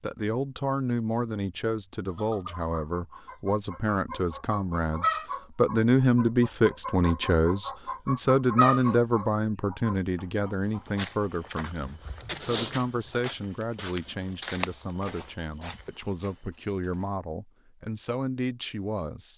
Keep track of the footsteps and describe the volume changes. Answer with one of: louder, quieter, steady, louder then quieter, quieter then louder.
louder then quieter.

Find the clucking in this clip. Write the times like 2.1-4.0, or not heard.
2.1-11.1.